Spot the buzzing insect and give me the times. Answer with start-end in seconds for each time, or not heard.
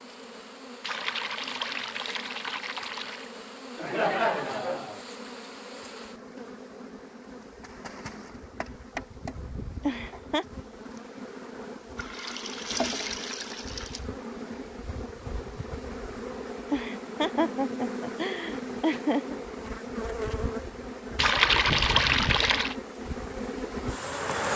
0.0-24.5.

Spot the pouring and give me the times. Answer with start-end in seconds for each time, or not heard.
0.8-3.3, 11.9-14.1, 21.1-22.8.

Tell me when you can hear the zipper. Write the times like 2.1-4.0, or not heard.
not heard.